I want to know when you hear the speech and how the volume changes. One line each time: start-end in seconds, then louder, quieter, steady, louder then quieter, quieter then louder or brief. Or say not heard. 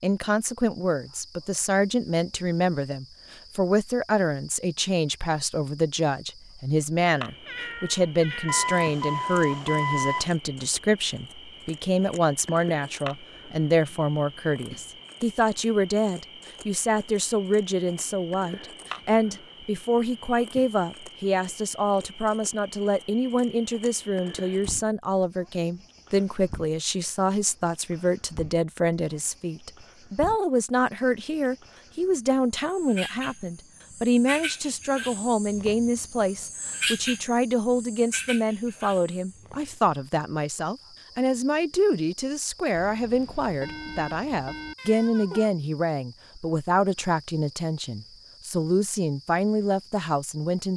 0.0-50.7 steady.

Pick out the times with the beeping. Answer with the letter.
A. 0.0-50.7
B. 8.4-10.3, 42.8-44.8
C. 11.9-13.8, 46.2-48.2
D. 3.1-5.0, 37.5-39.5
B.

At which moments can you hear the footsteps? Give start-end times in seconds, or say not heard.
not heard.